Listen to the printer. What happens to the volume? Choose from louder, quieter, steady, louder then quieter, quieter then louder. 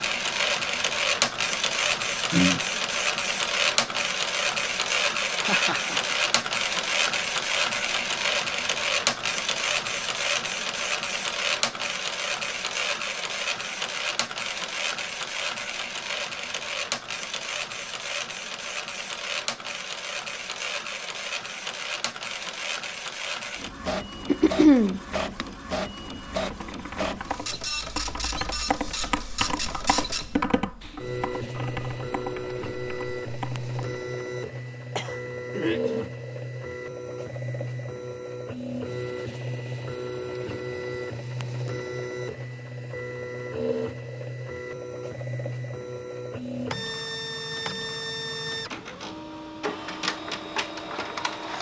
quieter.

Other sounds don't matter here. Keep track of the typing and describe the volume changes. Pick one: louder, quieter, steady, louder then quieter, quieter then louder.
louder then quieter.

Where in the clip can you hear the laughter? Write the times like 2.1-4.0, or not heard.
5.3-6.2.